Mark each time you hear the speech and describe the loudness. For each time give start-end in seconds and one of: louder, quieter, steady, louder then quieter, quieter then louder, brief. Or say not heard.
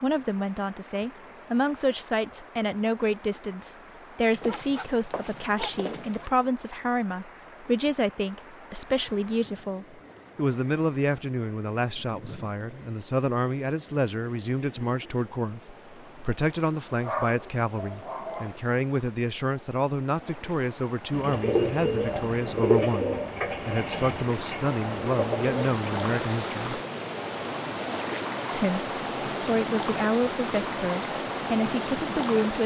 0.0-26.8 steady
28.5-32.6 steady.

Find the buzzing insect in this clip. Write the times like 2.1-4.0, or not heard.
not heard.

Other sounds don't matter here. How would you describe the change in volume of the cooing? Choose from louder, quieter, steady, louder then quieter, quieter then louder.
quieter.